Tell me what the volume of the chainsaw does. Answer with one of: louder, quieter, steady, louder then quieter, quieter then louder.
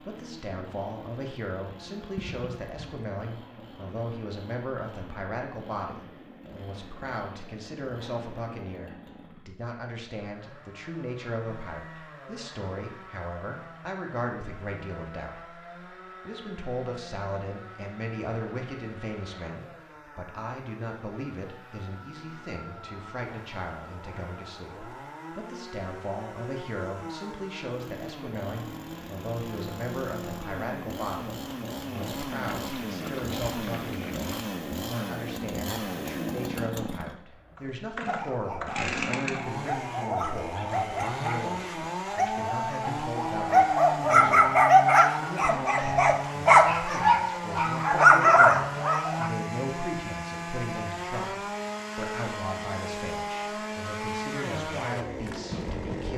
louder.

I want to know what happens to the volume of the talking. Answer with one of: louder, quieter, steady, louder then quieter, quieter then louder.
steady.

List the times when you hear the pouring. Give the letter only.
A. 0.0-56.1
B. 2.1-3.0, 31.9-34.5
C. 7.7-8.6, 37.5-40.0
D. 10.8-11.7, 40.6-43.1
B.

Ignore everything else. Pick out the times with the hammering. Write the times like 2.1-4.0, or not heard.
not heard.